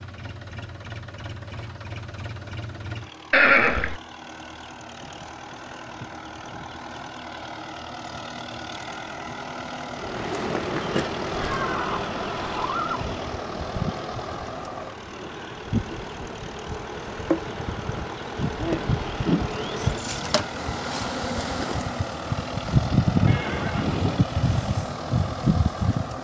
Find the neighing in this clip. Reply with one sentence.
The neighing can be heard from 3.3 to 4.0 s, from 11.3 to 13.0 s and from 23.2 to 24.2 s.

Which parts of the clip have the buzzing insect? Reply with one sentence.
The buzzing insect can be heard from 9.9 to 26.1 s.